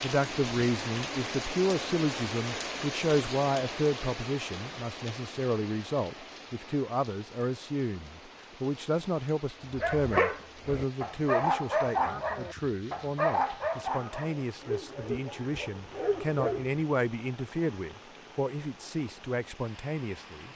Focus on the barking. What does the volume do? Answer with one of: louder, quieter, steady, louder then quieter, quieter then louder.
quieter.